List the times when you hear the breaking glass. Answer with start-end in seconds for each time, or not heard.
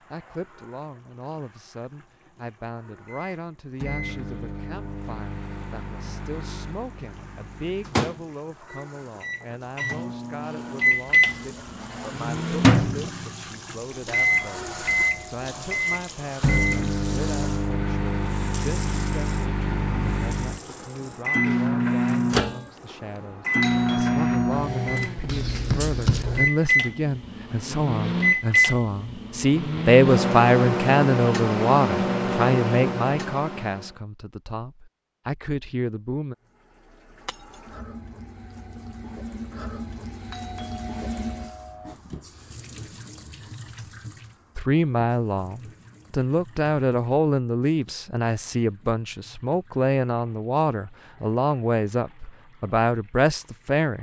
37.2-37.8.